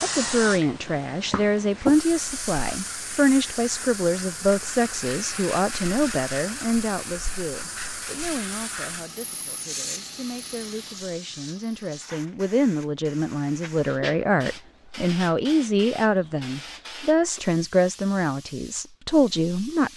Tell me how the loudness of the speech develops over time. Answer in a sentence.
The volume of the speech goes down, then up.